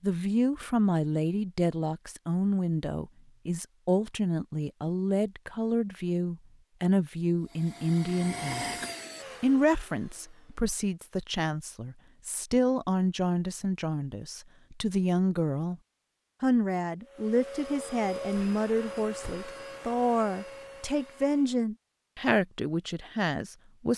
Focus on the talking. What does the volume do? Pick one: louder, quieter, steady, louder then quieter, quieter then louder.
steady.